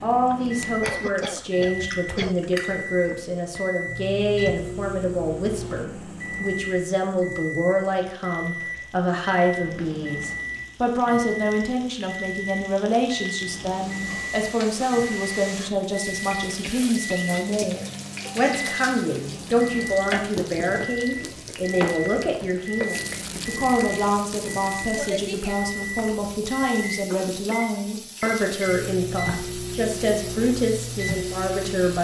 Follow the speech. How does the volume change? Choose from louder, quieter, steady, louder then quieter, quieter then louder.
steady.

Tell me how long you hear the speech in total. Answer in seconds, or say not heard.
32 s.